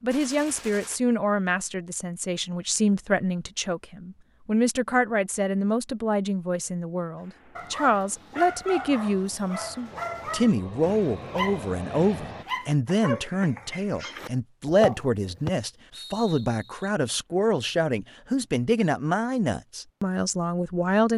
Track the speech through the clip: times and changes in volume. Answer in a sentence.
The speech can be heard from 0.0 to 21.1 s, at a steady volume.